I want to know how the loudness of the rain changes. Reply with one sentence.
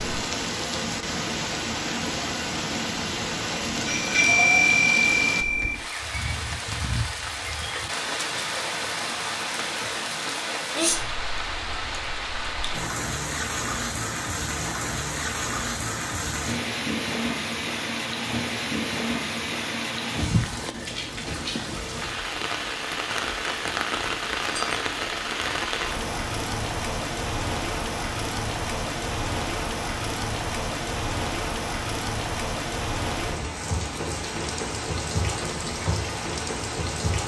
The loudness of the rain stays about the same.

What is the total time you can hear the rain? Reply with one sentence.
The rain can be heard for 37 seconds in total.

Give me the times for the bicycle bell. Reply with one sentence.
You can hear the bicycle bell from 3.9 to 5.8 s.